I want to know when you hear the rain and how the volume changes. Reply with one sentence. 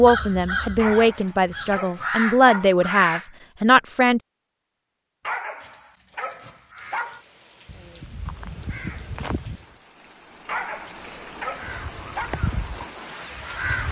You can hear the rain from 6.8 to 13.8 s, getting louder.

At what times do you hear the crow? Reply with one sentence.
The crow can be heard from 0.0 to 3.2 s, from 6.7 to 9.7 s and from 11.6 to 13.8 s.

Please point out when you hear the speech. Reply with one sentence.
The speech can be heard from 0.0 to 4.2 s.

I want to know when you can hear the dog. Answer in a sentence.
You can hear the dog from 0.8 to 2.8 s, from 5.2 to 7.2 s and from 10.4 to 12.3 s.